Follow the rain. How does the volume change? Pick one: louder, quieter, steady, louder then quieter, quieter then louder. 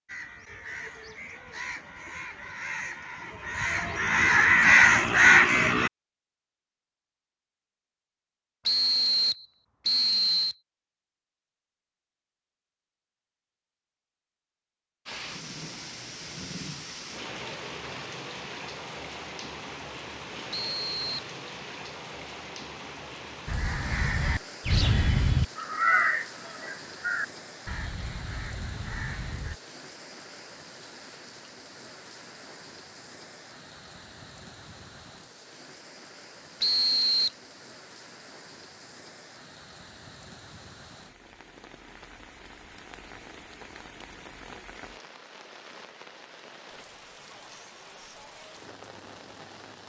quieter.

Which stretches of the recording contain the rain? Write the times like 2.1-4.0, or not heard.
15.1-49.8.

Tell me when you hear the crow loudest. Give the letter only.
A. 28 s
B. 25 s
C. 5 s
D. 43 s
C.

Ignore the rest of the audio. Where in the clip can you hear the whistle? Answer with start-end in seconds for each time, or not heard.
8.7-10.6, 20.5-21.2, 36.6-37.3.